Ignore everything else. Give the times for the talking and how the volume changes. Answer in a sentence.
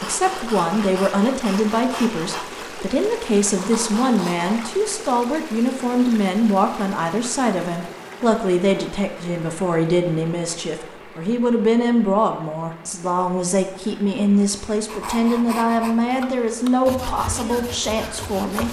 You can hear the talking from 0.0 to 18.6 s, at a steady volume.